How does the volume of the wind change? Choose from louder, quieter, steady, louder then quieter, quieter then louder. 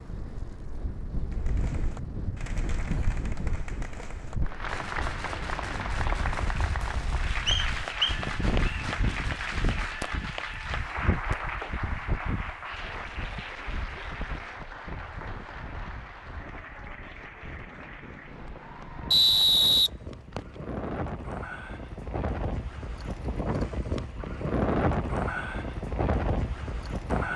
louder.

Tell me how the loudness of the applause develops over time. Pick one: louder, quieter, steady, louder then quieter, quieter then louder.
quieter.